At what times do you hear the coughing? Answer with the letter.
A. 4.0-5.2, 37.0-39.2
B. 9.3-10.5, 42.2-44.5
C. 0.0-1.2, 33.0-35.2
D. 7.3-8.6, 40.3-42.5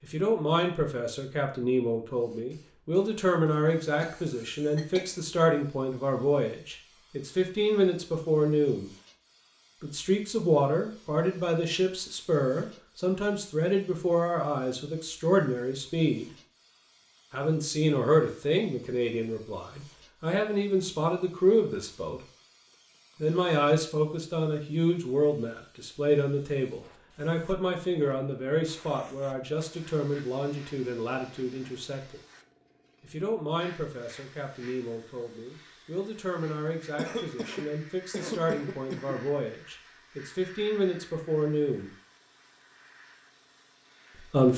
A.